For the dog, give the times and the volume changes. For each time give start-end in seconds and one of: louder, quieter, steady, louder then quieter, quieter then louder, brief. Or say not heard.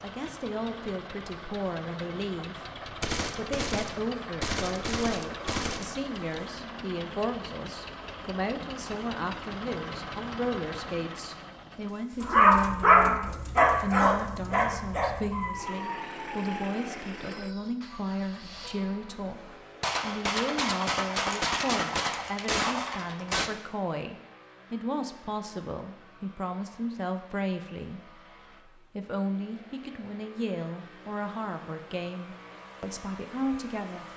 12.2-17.7 quieter.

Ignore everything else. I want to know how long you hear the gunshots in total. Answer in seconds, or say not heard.
7 s.